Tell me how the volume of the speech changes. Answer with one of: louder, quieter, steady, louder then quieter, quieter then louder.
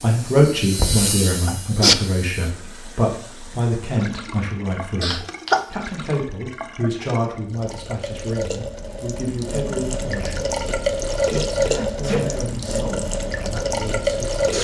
quieter.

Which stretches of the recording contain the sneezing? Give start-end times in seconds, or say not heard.
1.4-1.9, 5.0-5.7, 11.6-12.3.